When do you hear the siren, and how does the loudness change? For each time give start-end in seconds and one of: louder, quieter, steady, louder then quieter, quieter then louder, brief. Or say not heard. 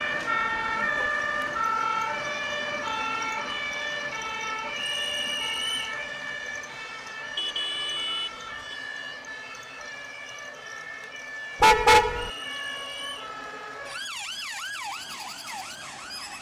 0.0-16.3 quieter.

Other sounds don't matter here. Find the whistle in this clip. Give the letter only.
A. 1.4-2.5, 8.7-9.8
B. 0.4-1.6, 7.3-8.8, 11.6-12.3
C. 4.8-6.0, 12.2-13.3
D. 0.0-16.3
C.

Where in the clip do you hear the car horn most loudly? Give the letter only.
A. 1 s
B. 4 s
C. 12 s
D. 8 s
C.